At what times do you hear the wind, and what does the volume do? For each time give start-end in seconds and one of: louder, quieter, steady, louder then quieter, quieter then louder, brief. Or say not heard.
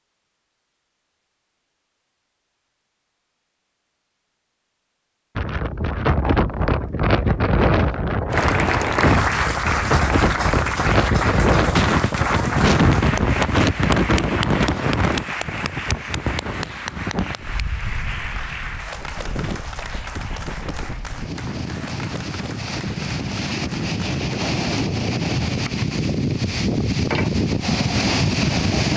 5.3-28.9 quieter then louder.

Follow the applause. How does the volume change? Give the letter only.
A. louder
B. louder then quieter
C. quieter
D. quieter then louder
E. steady
C.